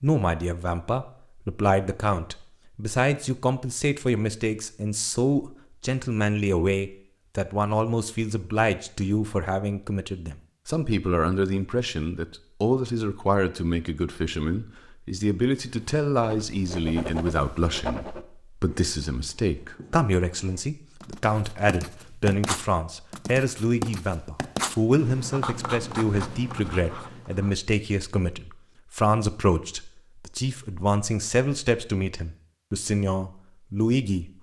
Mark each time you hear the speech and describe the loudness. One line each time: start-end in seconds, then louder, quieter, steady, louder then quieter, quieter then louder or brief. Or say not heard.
0.0-34.3 steady.